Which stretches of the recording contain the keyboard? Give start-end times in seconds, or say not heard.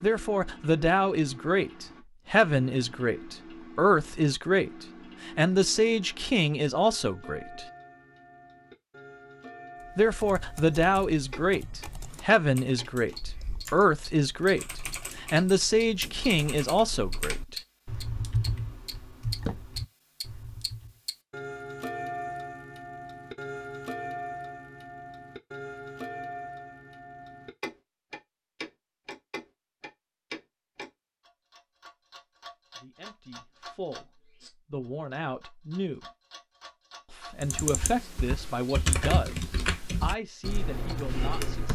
9.8-21.0, 37.4-41.7.